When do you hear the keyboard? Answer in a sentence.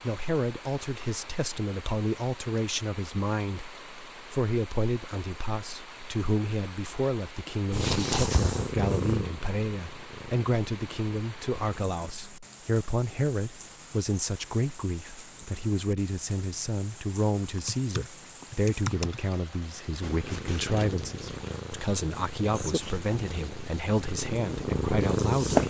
The keyboard can be heard from 17.6 to 19.2 s.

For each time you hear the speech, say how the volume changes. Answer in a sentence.
You can hear the speech from 0.0 to 25.6 s, at a steady volume.